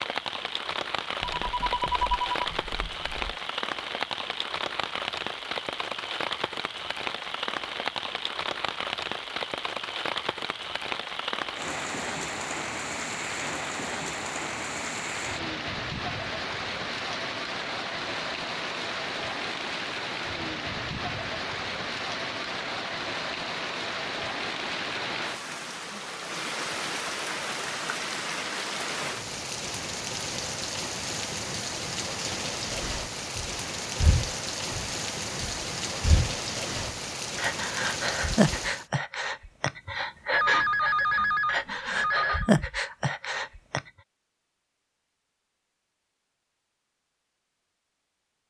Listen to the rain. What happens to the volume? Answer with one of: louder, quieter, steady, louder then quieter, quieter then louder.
steady.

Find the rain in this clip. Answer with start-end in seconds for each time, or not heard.
0.0-38.9.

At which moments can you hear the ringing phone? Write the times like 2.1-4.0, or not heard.
1.2-3.4, 40.3-42.5.